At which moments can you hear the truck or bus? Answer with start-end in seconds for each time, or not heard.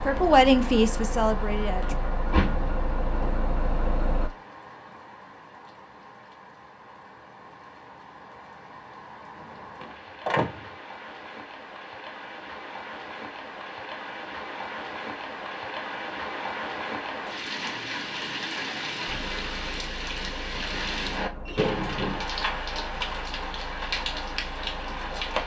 0.0-4.3, 19.1-25.4.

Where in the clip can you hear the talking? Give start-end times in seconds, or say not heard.
0.0-1.9.